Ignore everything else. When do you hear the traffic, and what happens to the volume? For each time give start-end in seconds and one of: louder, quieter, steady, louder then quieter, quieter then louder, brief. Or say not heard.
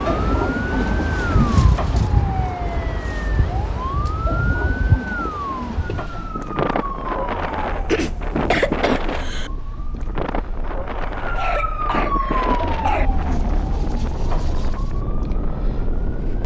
not heard.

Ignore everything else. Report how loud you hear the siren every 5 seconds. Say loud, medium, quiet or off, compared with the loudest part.
loud, loud, loud, medium.